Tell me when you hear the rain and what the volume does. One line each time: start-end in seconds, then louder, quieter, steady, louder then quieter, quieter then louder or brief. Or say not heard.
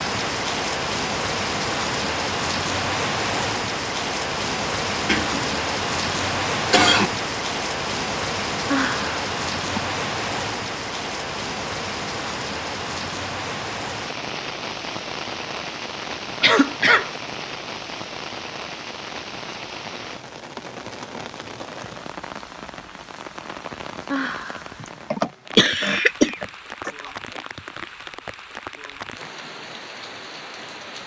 0.0-31.0 quieter.